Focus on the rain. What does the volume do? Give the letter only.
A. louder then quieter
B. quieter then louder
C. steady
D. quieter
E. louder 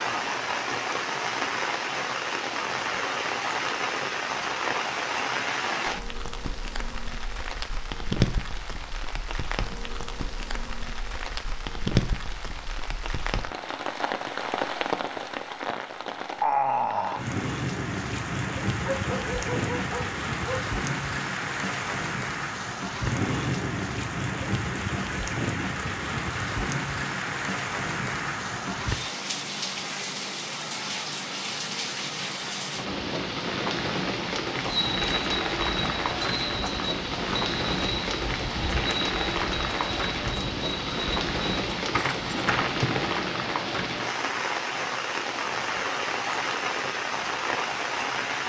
C.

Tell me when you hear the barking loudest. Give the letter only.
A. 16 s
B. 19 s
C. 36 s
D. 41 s
B.